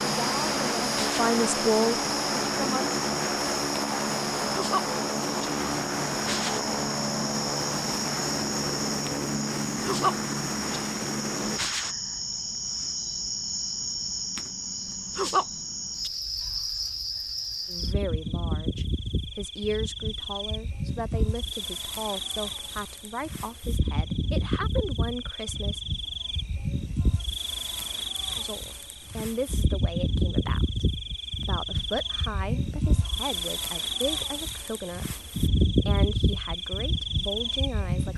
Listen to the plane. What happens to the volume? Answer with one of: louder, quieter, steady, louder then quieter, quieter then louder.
steady.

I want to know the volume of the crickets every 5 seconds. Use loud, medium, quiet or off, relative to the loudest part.
medium, medium, loud, loud, medium, medium, loud, loud.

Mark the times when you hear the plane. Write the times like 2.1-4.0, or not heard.
0.0-11.6.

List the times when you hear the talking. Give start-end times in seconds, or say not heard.
0.0-2.9, 17.6-25.8, 28.4-38.1.